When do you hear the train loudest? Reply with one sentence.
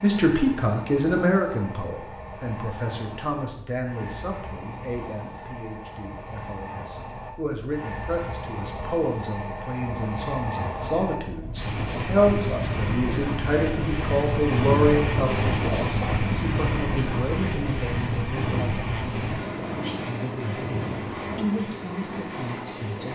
The loudest moment of the train is at 15 seconds.